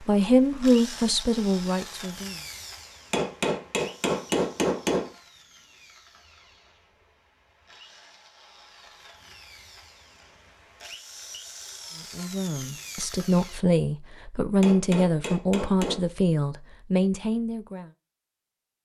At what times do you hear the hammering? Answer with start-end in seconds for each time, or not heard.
3.1-5.1, 14.6-16.0.